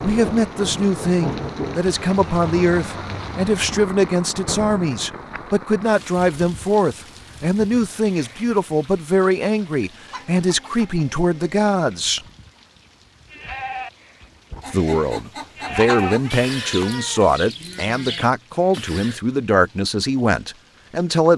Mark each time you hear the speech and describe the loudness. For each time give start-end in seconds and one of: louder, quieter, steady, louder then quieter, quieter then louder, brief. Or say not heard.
0.0-12.2 steady
14.7-21.3 steady.